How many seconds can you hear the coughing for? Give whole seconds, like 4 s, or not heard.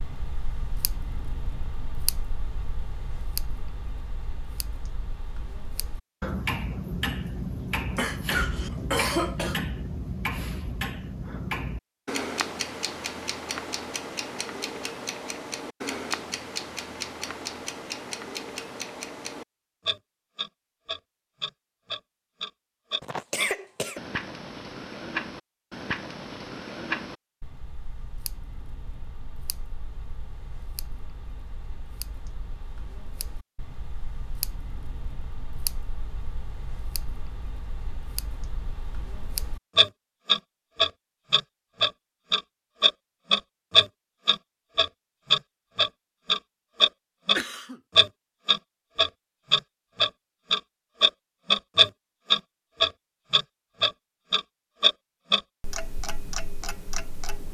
3 s.